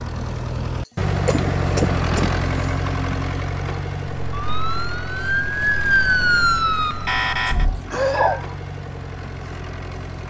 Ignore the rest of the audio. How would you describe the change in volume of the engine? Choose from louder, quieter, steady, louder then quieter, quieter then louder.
quieter.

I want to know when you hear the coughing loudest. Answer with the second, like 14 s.
8 s.